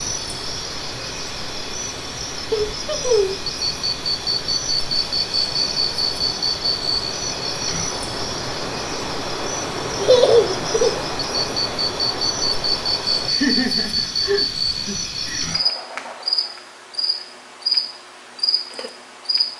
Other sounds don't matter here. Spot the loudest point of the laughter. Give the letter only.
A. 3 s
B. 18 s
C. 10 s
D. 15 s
C.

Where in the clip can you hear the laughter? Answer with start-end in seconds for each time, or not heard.
2.5-3.5, 10.0-11.1, 13.3-15.5.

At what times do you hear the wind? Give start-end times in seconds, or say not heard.
0.0-13.3.